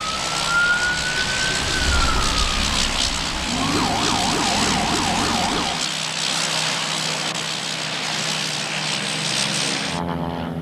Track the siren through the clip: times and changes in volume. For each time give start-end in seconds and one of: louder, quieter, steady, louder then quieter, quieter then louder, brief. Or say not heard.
0.0-5.8 quieter then louder.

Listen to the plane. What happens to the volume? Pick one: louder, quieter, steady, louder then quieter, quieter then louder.
steady.